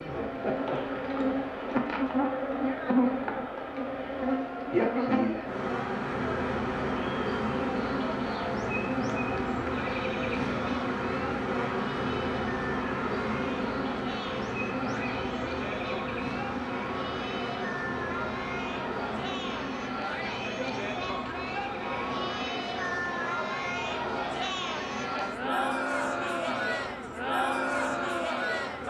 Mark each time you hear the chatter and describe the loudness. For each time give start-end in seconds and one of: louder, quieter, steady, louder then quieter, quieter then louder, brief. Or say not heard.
0.0-28.8 louder.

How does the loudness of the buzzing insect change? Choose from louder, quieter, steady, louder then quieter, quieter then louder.
quieter.